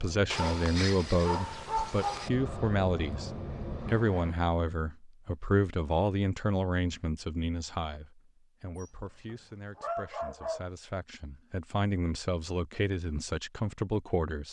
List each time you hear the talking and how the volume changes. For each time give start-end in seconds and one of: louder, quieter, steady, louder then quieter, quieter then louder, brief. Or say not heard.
0.0-14.4 quieter then louder.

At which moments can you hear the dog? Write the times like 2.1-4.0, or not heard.
0.3-2.3, 8.8-10.7.